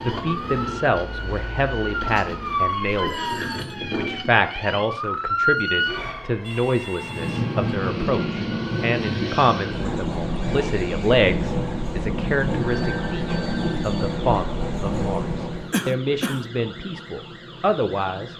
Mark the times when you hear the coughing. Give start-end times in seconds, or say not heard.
15.7-16.5.